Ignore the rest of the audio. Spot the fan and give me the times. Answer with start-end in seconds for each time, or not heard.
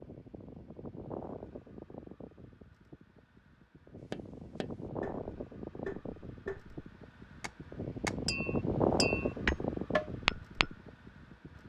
0.0-11.6.